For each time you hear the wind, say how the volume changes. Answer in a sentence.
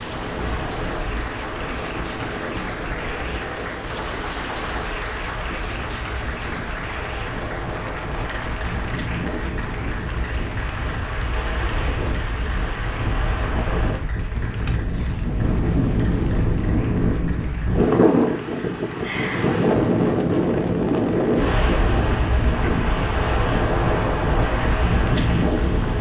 The wind can be heard from 0.0 to 25.9 s, getting louder.